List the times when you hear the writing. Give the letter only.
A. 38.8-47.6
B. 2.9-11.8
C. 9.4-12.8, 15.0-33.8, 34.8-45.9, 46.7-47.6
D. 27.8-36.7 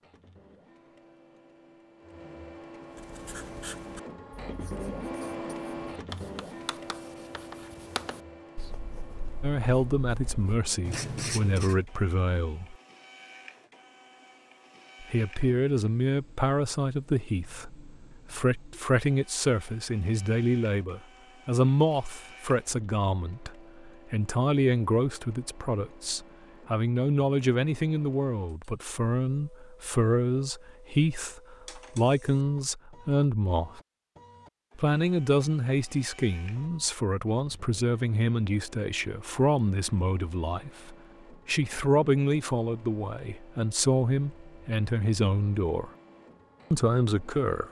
B.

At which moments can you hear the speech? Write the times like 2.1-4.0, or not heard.
9.4-12.8, 15.0-33.8, 34.8-45.9, 46.7-47.6.